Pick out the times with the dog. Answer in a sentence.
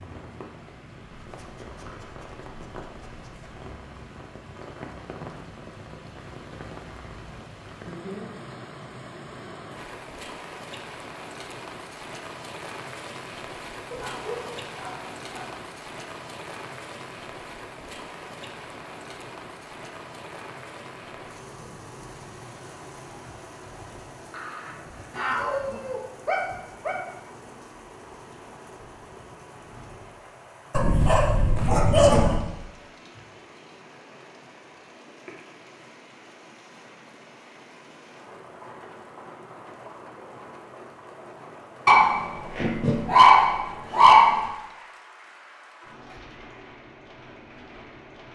You can hear the dog from 1.2 to 3.5 s, from 13.9 to 15.6 s, from 24.3 to 26.9 s, from 30.7 to 32.4 s and from 41.9 to 44.4 s.